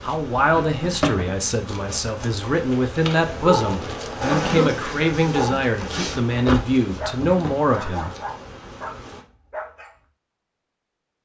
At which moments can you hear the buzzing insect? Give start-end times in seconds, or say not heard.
0.0-9.2.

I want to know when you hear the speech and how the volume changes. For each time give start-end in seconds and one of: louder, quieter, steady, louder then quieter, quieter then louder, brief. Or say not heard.
0.0-8.1 steady.